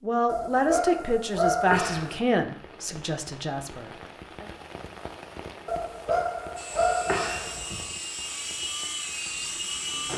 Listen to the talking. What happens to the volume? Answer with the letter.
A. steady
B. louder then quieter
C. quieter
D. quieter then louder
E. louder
C.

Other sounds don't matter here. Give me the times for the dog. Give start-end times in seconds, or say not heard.
0.2-2.2, 5.7-7.9.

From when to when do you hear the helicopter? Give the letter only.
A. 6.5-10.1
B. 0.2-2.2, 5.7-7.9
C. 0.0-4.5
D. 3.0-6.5
A.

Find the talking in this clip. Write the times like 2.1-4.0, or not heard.
0.0-4.5.